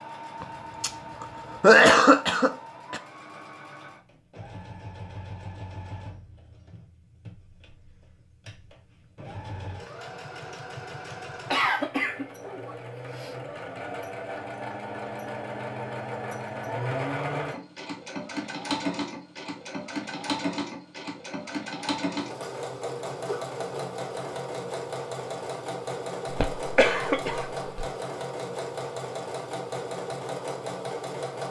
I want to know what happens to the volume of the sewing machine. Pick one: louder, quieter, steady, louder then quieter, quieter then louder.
louder.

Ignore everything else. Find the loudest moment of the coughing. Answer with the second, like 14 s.
2 s.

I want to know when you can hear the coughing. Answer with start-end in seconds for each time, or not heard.
0.4-0.9, 1.6-3.0, 11.5-13.3, 26.3-27.9.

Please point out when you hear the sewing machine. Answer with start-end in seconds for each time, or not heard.
0.0-31.4.